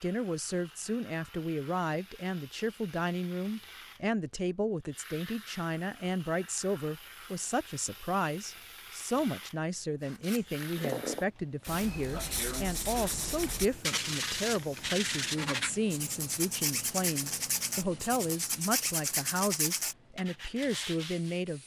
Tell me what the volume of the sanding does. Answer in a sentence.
The loudness of the sanding stays about the same.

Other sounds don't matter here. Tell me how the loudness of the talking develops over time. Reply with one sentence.
The volume of the talking stays about the same.